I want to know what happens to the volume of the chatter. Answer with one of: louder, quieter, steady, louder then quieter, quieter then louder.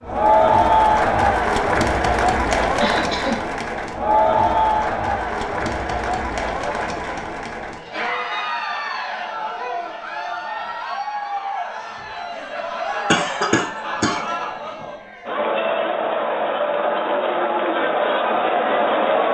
quieter then louder.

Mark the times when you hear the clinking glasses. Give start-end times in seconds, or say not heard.
not heard.